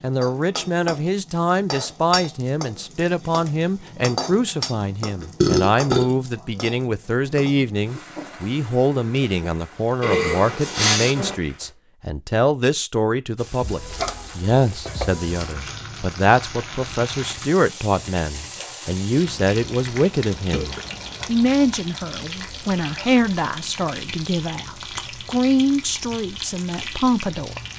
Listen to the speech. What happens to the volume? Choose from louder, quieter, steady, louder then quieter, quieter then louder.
steady.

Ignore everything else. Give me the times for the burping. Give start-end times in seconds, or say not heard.
4.8-6.0, 10.0-11.3, 20.5-21.4, 22.4-23.1.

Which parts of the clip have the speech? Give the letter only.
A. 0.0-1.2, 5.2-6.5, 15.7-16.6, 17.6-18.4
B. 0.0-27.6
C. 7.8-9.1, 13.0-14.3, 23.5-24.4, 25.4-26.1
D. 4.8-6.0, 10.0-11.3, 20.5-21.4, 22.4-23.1
B.